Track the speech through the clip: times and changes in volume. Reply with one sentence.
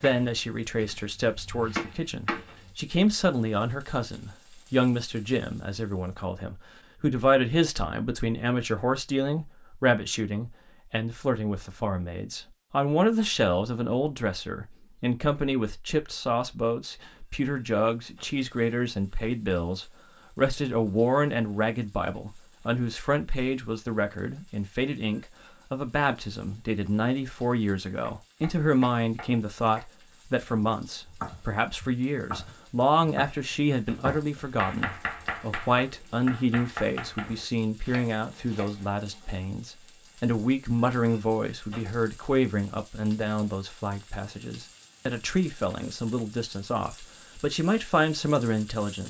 The speech can be heard from 0.0 to 49.0 s, at a steady volume.